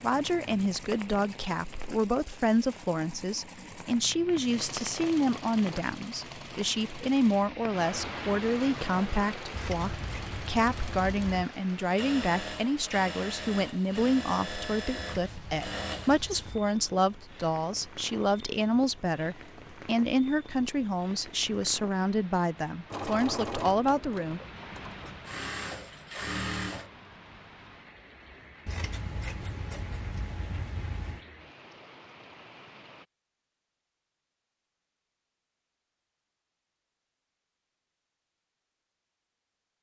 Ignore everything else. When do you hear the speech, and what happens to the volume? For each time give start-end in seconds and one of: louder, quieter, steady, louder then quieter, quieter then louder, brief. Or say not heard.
0.0-24.4 steady.